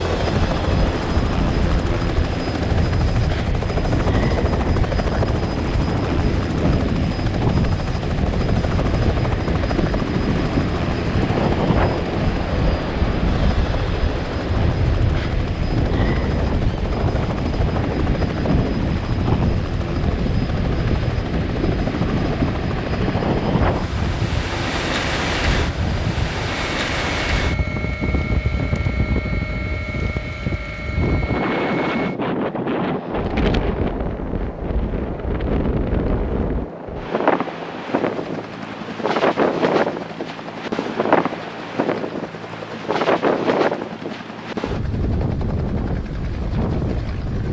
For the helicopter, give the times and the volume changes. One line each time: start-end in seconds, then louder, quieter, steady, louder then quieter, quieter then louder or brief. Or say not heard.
0.0-47.4 quieter.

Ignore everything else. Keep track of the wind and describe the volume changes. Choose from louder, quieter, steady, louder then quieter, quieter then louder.
steady.